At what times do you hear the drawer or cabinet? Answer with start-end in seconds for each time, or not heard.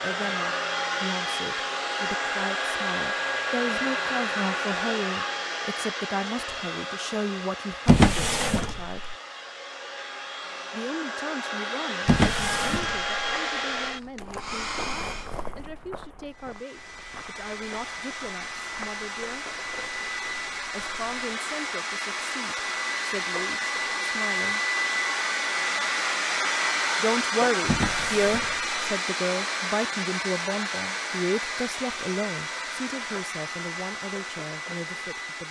7.8-9.2, 12.1-13.2, 27.6-28.8.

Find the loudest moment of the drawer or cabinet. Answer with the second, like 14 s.
8 s.